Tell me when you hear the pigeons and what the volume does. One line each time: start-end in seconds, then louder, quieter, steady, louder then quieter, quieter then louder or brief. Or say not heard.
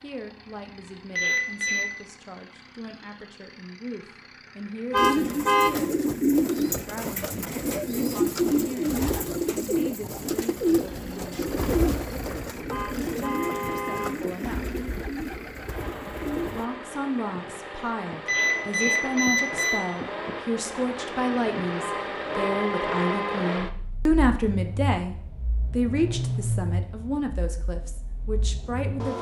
5.0-16.6 quieter.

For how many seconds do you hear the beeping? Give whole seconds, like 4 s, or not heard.
2 s.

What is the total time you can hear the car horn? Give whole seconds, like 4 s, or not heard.
4 s.